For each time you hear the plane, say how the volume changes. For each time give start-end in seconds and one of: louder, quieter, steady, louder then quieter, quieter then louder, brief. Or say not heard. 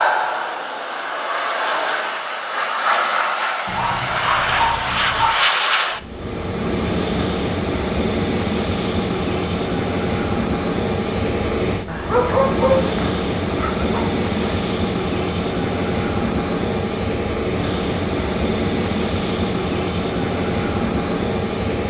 0.0-21.8 steady.